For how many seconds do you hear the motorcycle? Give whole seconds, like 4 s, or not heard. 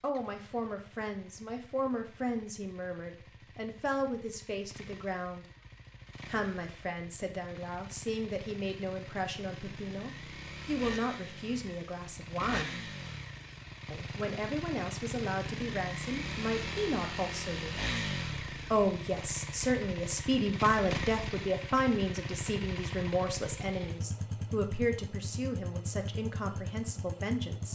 28 s.